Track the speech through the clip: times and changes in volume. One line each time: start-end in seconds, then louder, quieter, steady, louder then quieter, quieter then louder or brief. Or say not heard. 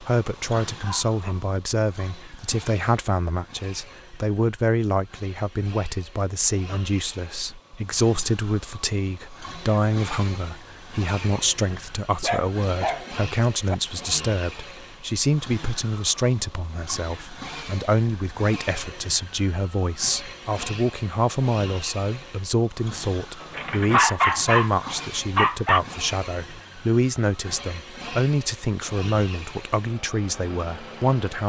0.0-31.4 steady.